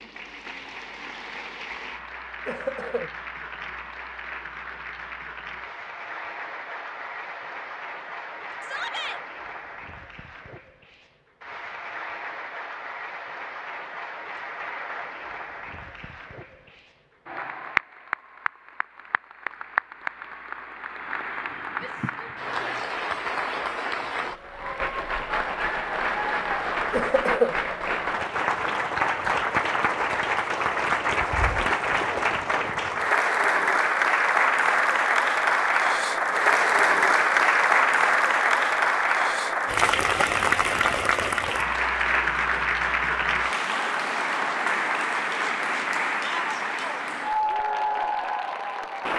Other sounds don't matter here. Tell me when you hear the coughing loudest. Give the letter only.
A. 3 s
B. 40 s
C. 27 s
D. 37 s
C.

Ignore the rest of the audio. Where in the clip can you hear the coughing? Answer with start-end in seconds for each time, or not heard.
2.5-3.1, 26.9-27.6.